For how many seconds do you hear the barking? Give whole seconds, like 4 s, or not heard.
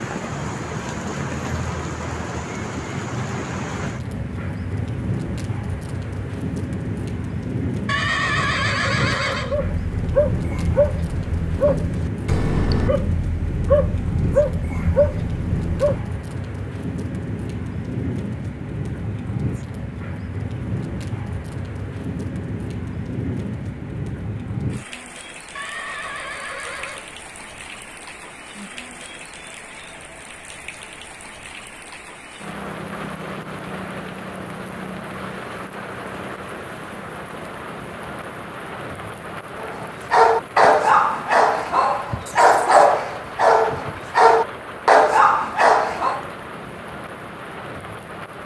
13 s.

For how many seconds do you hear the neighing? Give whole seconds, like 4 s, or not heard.
3 s.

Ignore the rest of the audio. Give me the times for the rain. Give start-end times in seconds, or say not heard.
0.0-48.4.